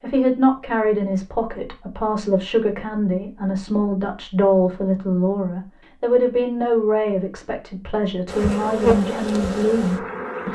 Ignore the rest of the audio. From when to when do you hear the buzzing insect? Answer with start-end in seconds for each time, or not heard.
8.2-10.4.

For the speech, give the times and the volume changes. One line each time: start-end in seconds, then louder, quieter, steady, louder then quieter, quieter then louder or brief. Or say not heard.
0.0-10.4 steady.